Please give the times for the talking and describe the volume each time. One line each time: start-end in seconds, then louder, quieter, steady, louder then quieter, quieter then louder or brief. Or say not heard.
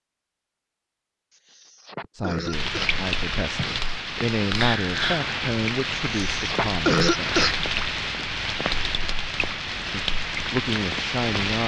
2.1-7.5 louder then quieter
9.9-11.6 brief.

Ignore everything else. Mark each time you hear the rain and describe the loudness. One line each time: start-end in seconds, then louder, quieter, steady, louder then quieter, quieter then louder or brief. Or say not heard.
2.5-11.6 steady.